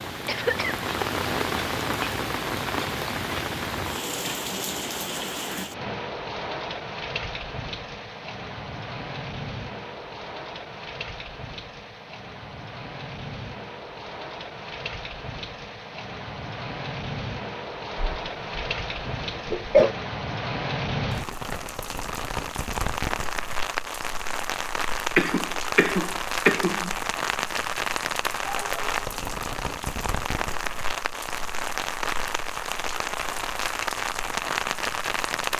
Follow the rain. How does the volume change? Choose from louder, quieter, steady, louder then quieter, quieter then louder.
quieter then louder.